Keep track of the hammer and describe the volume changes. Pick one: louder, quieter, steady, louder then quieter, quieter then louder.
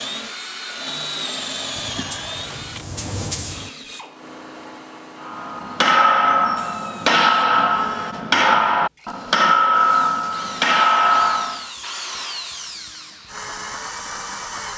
steady.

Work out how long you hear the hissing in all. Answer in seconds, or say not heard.
2 s.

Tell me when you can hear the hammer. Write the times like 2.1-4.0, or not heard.
5.2-11.7.